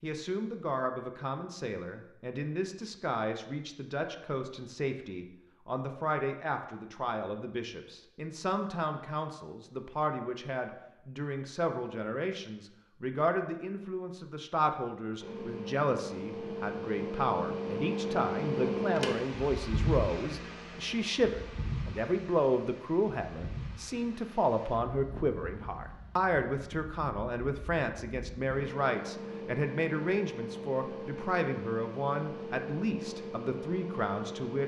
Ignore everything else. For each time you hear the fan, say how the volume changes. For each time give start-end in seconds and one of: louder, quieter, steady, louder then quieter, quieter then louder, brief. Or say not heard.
15.2-34.6 quieter then louder.